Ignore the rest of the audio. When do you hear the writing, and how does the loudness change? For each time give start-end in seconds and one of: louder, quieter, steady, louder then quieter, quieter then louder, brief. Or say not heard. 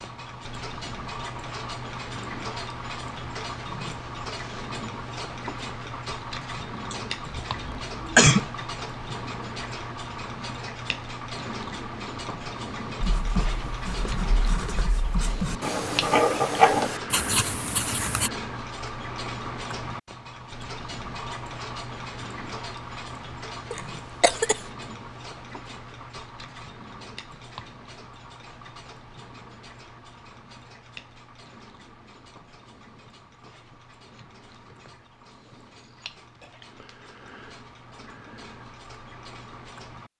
13.0-18.3 louder then quieter.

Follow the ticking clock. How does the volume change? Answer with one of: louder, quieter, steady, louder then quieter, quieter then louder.
quieter.